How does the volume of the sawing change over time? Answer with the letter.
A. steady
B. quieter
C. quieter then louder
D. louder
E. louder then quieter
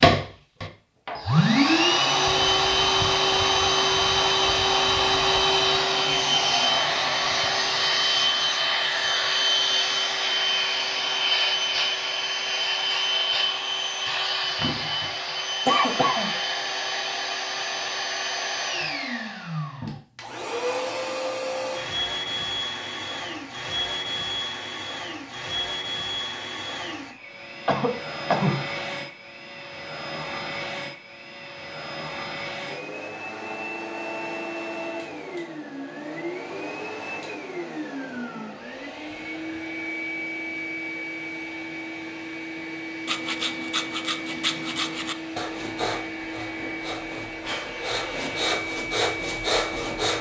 C.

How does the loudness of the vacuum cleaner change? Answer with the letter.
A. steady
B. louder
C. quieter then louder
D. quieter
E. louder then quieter
D.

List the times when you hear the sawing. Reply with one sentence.
The sawing can be heard from 43.0 to 50.1 s.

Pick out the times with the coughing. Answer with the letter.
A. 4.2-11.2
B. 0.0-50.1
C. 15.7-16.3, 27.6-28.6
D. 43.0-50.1
C.